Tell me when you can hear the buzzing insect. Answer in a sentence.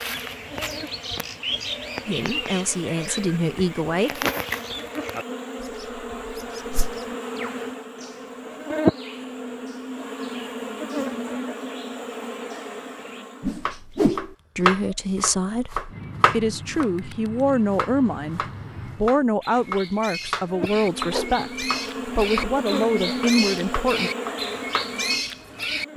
The buzzing insect can be heard from 0.0 to 13.7 s and from 20.4 to 25.9 s.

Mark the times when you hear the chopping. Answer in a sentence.
You can hear the chopping from 13.7 to 16.9 s and from 17.7 to 24.9 s.